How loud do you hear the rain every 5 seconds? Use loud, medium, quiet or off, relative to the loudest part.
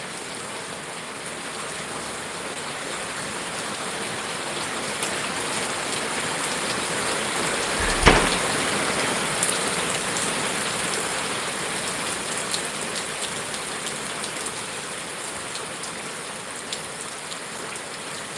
medium, loud, loud, medium.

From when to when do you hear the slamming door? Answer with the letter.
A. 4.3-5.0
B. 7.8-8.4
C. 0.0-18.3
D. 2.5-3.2
B.